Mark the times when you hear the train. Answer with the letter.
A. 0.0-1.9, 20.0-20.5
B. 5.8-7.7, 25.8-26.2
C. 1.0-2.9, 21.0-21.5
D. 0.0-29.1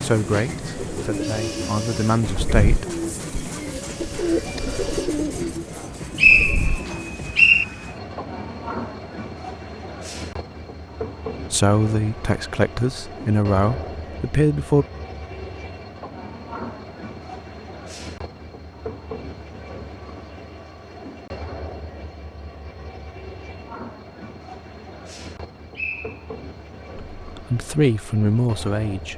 D.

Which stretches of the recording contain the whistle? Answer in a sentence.
You can hear the whistle from 5.8 to 7.7 s and from 25.8 to 26.2 s.